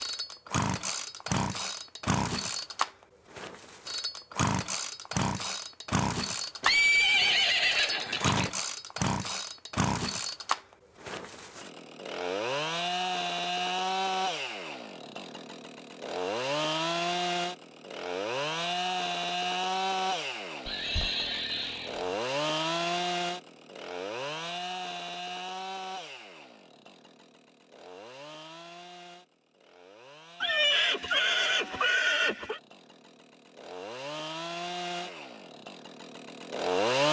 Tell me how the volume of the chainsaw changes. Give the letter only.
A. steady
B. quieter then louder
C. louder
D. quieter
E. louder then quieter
D.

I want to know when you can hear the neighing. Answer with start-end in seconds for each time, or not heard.
6.6-8.5, 20.6-22.1, 30.4-32.6.